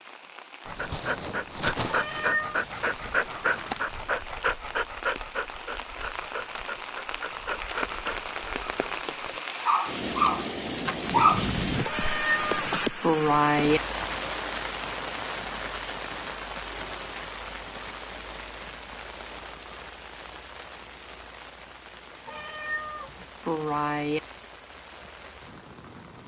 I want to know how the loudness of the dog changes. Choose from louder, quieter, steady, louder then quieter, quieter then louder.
quieter then louder.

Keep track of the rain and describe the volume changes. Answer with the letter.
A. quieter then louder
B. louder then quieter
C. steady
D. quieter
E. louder
B.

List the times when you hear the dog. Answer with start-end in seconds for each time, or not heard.
0.7-11.6.